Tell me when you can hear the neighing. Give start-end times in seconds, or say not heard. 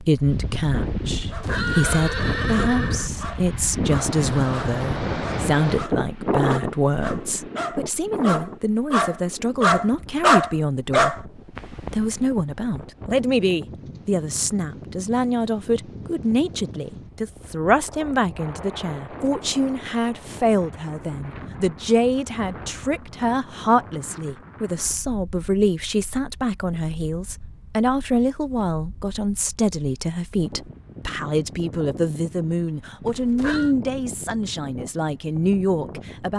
1.1-3.1, 33.0-33.8.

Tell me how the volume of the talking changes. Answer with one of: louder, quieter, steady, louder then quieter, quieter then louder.
steady.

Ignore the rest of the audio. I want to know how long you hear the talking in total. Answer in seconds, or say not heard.
36 s.